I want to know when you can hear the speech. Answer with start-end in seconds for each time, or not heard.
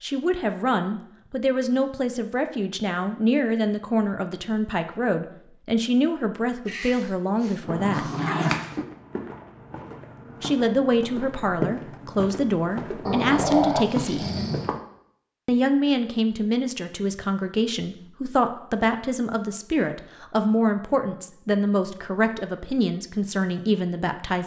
0.0-8.1, 10.4-14.3, 15.4-24.4.